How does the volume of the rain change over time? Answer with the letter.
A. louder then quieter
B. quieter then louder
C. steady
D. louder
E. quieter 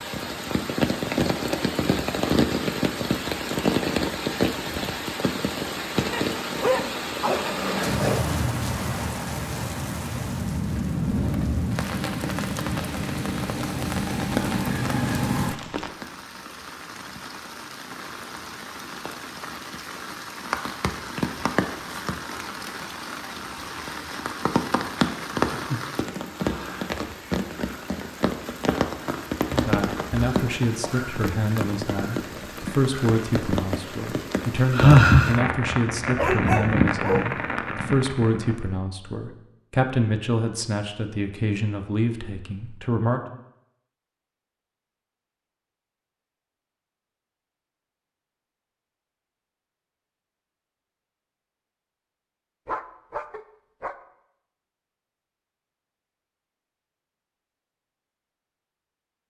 B.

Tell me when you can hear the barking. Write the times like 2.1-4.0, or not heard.
6.1-8.3, 36.1-37.4, 52.6-54.0.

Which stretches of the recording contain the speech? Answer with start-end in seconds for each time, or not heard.
29.5-43.2.